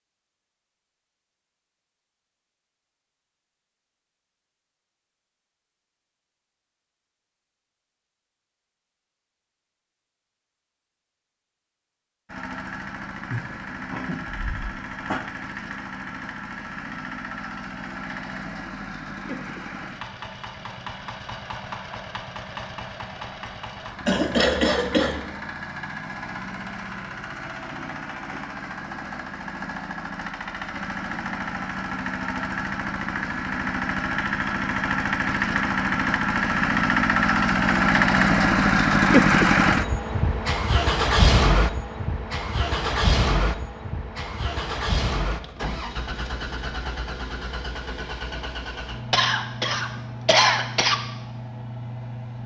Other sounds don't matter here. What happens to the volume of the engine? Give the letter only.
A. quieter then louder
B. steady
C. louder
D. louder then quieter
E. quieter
D.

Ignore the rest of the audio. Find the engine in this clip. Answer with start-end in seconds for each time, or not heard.
12.2-52.4.